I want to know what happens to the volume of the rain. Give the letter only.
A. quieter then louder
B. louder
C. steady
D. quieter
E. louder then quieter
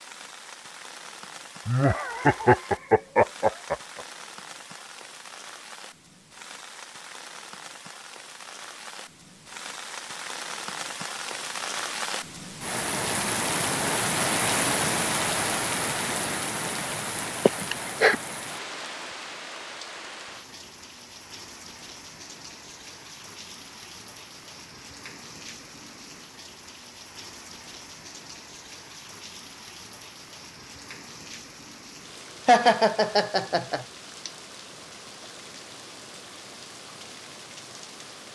E.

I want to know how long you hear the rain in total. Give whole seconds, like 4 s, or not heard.
38 s.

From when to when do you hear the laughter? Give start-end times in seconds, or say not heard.
1.6-4.0, 17.4-18.1, 32.5-33.9.